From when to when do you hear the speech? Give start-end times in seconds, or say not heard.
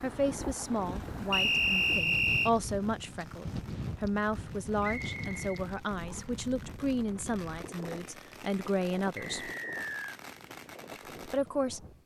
0.0-9.5, 11.2-11.8.